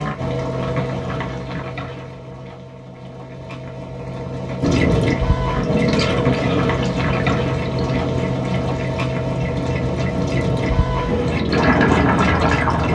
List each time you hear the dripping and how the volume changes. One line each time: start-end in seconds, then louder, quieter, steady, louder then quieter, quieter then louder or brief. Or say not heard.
4.6-12.8 quieter then louder.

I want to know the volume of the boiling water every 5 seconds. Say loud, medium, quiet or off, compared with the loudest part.
medium, loud, loud.